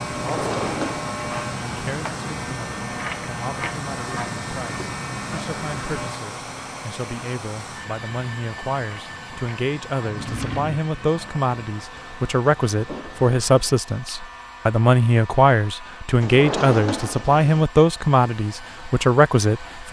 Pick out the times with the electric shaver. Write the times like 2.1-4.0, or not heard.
0.0-16.1.